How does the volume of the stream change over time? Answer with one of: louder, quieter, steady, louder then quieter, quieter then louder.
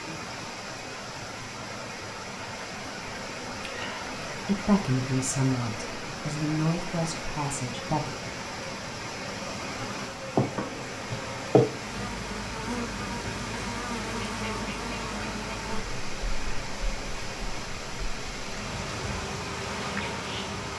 steady.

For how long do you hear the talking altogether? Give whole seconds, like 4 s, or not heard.
4 s.